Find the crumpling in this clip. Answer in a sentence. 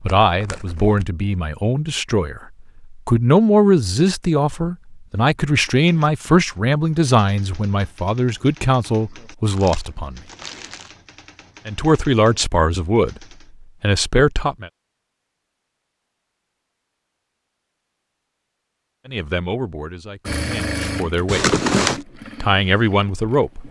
You can hear the crumpling from 0.1 to 1.1 s, from 9.4 to 10.9 s and from 21.2 to 22.0 s.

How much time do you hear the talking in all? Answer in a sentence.
The talking can be heard for 17 seconds in total.